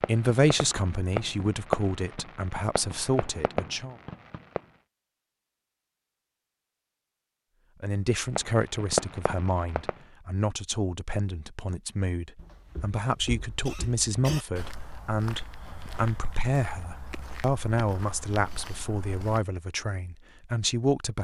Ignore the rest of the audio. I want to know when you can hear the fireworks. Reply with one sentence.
The fireworks can be heard from 0.0 to 4.6 s and from 8.3 to 10.0 s.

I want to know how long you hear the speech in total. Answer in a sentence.
You can hear the speech for 17 seconds altogether.